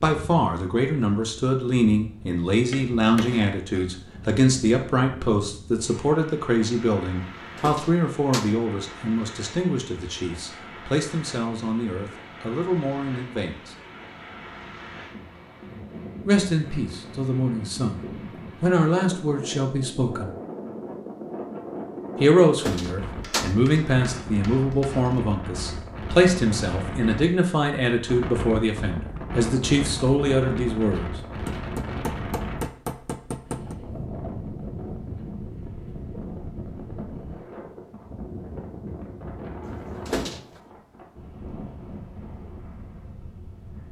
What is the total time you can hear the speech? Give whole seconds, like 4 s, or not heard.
26 s.